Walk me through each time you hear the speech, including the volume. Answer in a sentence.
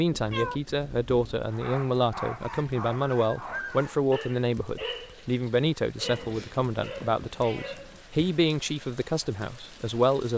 You can hear the speech from 0.0 to 10.3 s, at a steady volume.